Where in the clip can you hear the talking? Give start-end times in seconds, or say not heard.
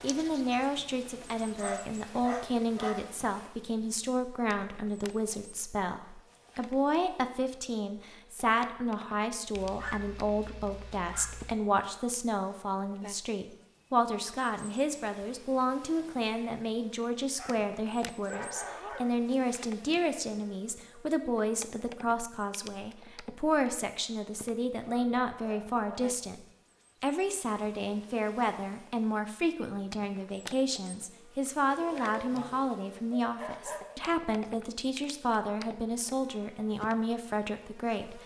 0.0-26.4, 27.0-38.2.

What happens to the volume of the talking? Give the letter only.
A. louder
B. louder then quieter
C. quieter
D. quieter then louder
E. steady
E.